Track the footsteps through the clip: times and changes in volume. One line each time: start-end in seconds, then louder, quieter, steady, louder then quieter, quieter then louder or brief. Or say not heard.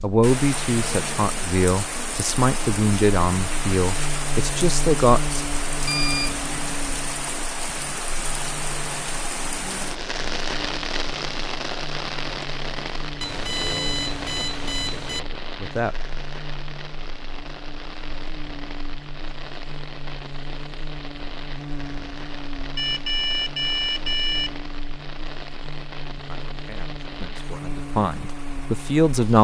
not heard.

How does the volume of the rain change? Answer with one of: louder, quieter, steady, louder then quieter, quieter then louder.
quieter.